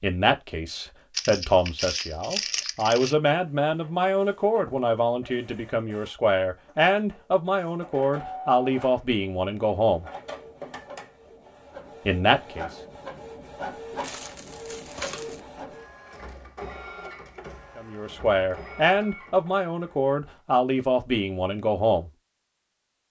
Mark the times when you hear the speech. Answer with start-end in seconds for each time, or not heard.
0.0-10.1, 12.1-12.7, 17.8-22.1.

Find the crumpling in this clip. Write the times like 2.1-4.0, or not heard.
1.1-3.1, 14.0-15.4.